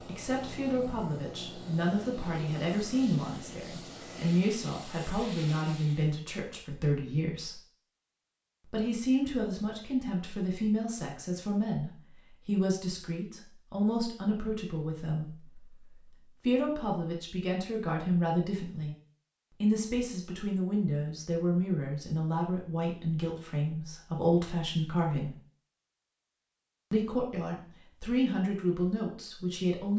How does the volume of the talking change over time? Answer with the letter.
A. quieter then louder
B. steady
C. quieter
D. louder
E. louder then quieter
B.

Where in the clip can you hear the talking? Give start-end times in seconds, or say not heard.
0.1-7.6, 8.7-18.9, 19.6-25.4, 26.9-29.9.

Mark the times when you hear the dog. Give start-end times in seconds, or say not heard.
not heard.